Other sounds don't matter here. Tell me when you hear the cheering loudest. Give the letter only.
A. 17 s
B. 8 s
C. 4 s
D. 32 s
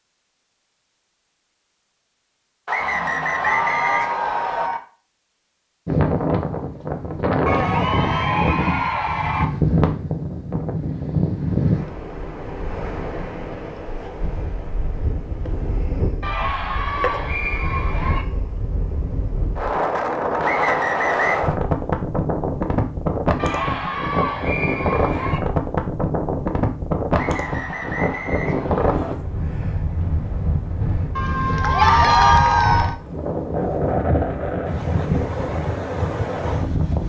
D.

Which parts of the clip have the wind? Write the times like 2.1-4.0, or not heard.
5.8-37.0.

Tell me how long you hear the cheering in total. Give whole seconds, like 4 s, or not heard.
10 s.